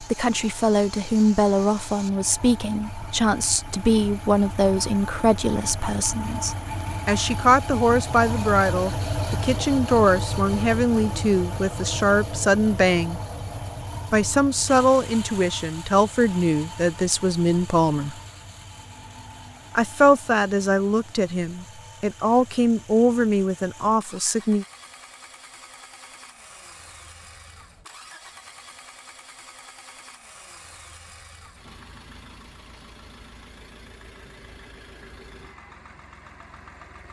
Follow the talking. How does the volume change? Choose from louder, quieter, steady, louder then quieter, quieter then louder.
steady.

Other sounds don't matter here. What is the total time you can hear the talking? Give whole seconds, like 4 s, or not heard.
22 s.